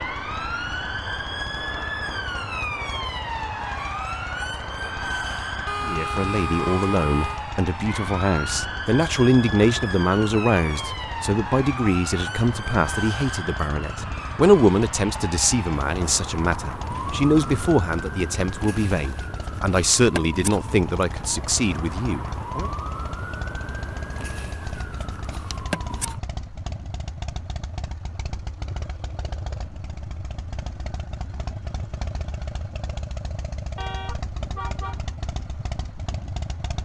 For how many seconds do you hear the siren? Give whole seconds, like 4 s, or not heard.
26 s.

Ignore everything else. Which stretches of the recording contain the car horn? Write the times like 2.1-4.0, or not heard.
5.7-7.4, 16.9-17.7, 33.8-35.0.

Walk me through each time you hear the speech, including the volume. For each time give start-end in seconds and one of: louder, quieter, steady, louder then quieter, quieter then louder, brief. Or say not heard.
5.8-22.7 steady.